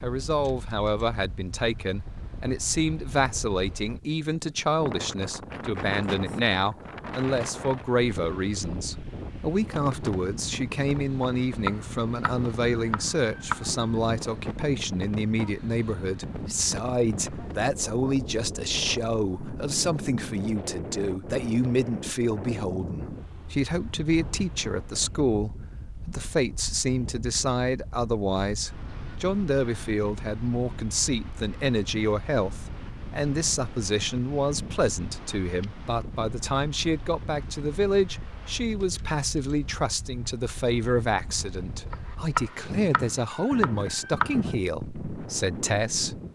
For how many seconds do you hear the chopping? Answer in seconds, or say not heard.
5 s.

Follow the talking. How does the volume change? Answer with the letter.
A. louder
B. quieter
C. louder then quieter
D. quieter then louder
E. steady
E.